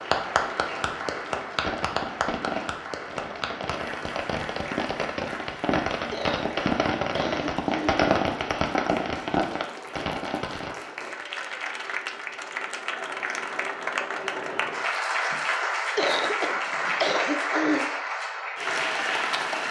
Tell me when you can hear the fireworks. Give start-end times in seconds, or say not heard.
1.6-10.8.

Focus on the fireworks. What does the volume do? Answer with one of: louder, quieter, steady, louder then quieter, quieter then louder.
louder.